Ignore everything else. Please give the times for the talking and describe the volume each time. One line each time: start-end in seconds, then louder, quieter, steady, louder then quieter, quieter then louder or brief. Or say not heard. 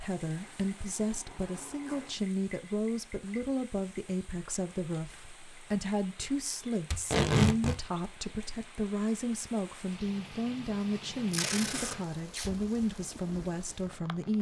0.0-14.3 steady.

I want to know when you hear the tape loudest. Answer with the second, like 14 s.
7 s.